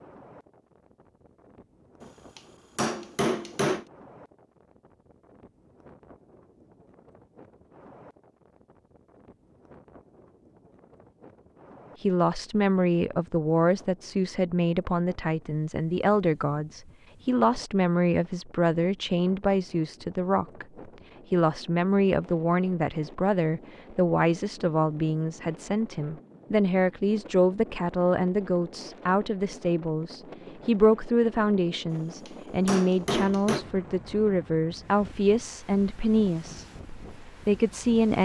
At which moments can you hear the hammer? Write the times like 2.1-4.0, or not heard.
2.0-3.9, 31.9-33.6.